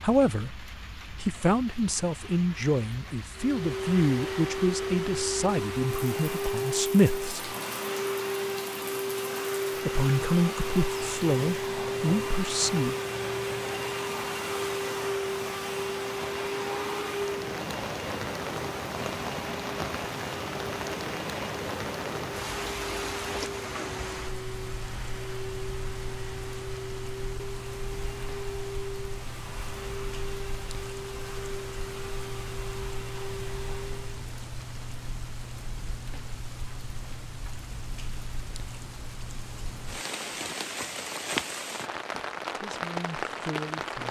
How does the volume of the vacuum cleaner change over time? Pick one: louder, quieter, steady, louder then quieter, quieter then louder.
quieter.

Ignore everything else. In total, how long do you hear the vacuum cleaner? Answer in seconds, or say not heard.
31 s.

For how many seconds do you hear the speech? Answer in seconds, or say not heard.
12 s.